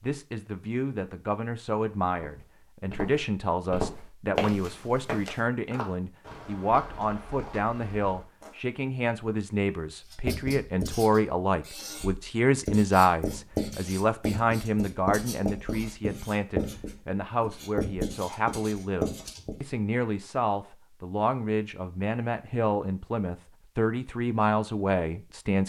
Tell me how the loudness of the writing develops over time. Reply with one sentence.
The loudness of the writing goes up.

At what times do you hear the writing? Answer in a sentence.
You can hear the writing from 10.1 to 19.6 s.